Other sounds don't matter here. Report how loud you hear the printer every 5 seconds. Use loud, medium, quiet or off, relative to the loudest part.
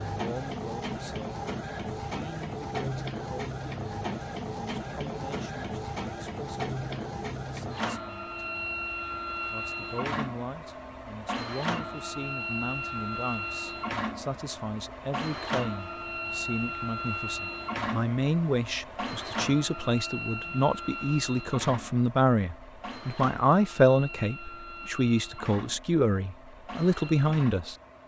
loud, loud, loud, loud, medium, medium.